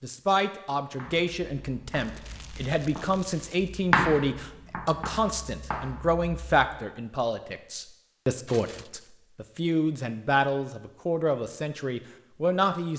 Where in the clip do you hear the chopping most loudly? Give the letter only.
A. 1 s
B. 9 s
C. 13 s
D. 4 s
D.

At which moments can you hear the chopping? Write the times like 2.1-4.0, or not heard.
0.9-6.7.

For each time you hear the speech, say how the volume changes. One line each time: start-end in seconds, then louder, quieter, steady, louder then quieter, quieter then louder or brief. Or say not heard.
0.0-12.9 steady.